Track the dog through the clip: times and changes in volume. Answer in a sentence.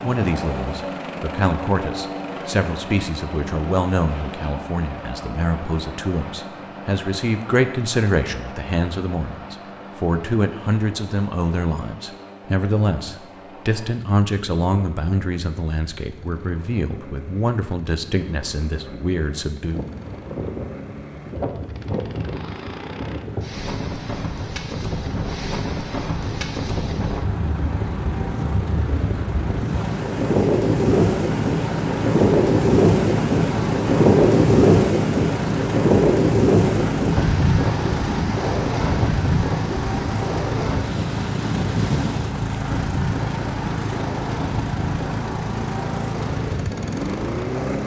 You can't hear the dog here.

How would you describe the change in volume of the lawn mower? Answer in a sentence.
The loudness of the lawn mower goes down, then up.